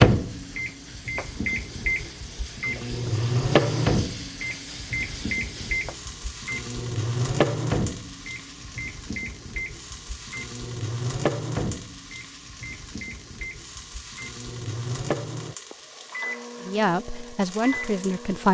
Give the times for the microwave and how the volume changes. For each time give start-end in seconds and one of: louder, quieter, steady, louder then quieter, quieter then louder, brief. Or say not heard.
0.0-18.4 quieter.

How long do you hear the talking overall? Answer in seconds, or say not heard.
2 s.